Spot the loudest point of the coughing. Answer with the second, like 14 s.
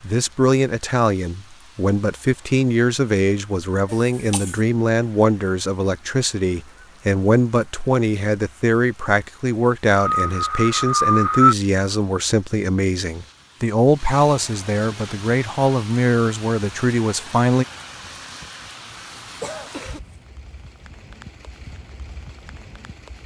11 s.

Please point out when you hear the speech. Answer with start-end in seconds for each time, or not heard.
0.0-17.6.